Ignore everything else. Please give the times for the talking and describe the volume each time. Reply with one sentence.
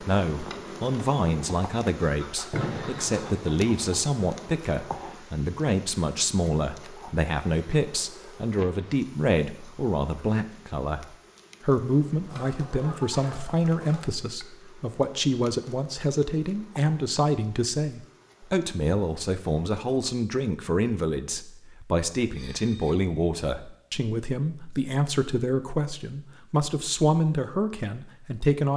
The talking can be heard from 0.0 to 28.7 s, at a steady volume.